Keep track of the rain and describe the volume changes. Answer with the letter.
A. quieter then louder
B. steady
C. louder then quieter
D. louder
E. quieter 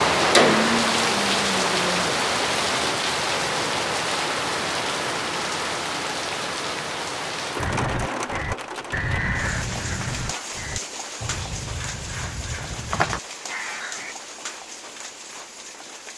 E.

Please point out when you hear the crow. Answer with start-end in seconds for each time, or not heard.
7.5-14.2.